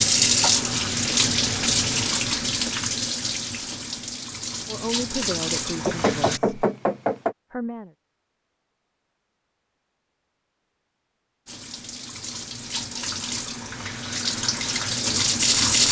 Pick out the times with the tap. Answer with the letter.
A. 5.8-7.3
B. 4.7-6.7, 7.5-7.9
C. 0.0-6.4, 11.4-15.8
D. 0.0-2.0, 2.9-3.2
C.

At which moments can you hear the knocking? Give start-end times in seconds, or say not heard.
5.8-7.3.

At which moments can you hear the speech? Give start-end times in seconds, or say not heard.
4.7-6.7, 7.5-7.9.